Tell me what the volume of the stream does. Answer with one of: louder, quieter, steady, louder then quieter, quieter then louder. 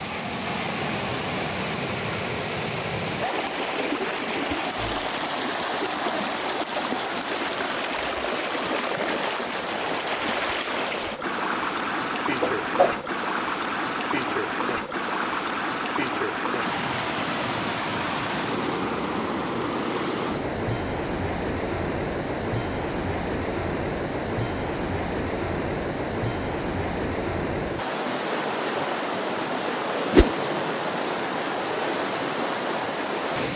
steady.